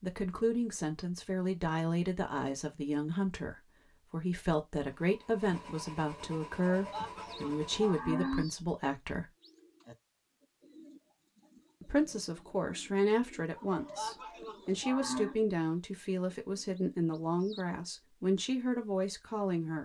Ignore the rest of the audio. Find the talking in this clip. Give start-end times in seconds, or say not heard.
0.0-9.3, 11.8-19.8.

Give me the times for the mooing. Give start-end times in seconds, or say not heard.
6.7-8.4, 13.6-15.3.